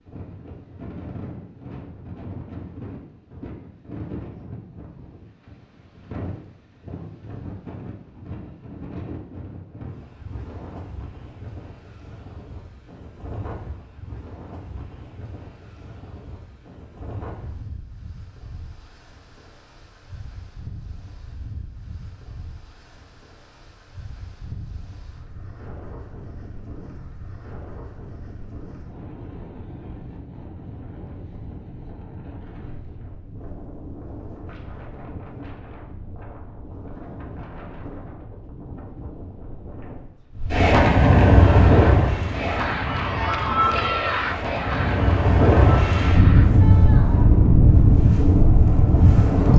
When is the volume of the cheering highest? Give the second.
44 s.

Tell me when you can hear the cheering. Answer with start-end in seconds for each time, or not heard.
41.4-47.3.